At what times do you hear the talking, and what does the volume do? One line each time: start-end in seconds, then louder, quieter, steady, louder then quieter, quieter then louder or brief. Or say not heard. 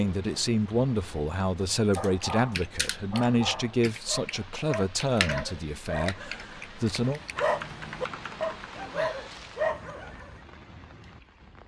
0.0-7.2 quieter.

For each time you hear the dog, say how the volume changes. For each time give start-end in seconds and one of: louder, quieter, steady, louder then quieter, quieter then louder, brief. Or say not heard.
1.9-10.4 louder.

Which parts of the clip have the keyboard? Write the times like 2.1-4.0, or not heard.
1.9-8.9.